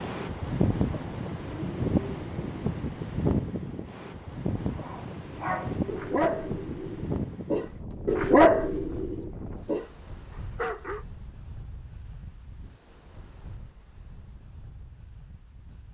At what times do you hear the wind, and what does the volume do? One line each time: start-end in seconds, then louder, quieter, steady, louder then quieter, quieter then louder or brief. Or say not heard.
0.0-15.8 quieter.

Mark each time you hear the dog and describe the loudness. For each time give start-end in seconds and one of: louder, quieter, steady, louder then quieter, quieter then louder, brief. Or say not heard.
4.8-9.9 louder then quieter
10.6-11.1 brief.